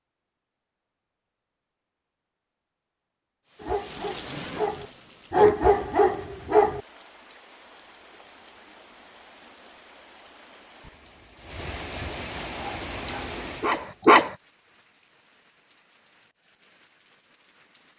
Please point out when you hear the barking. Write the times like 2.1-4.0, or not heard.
3.6-6.8, 12.5-14.3.